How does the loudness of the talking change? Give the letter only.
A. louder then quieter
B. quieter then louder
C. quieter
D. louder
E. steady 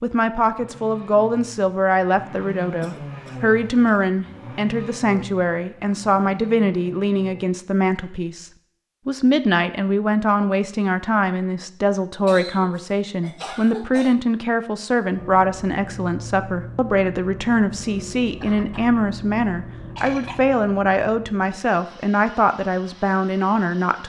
E.